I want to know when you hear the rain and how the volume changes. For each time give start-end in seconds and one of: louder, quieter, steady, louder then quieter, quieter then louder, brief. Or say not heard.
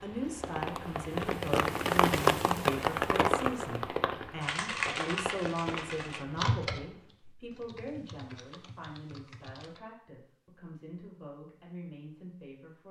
0.0-7.0 louder then quieter.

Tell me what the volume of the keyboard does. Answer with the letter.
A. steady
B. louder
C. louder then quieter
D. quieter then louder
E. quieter
E.